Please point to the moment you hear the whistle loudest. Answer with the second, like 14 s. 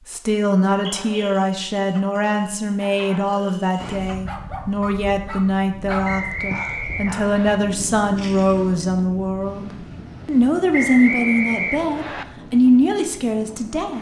11 s.